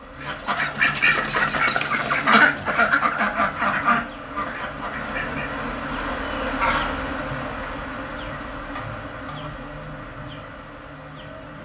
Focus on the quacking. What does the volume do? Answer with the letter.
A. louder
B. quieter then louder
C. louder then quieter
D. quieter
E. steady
D.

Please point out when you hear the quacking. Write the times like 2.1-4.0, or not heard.
0.2-5.6.